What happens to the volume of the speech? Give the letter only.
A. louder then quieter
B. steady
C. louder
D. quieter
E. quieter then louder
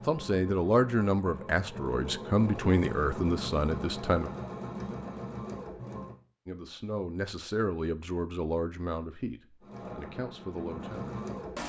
D.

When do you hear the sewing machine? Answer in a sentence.
The sewing machine can be heard from 0.0 to 6.2 s and from 9.6 to 11.6 s.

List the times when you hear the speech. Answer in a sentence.
The speech can be heard from 0.1 to 4.3 s and from 6.5 to 11.2 s.